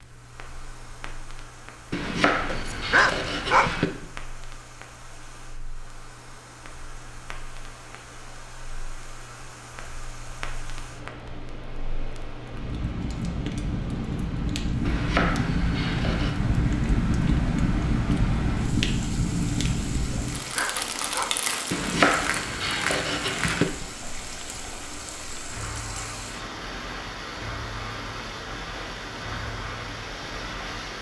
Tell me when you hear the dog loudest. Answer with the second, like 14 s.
3 s.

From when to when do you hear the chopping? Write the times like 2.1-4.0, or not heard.
1.9-3.9, 14.8-16.4, 21.7-23.6.